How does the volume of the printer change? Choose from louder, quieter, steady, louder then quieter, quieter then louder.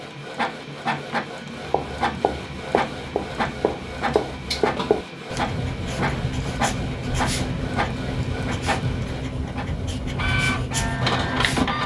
steady.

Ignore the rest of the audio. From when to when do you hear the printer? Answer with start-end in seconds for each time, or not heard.
0.0-11.8.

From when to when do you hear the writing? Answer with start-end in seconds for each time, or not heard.
1.6-11.8.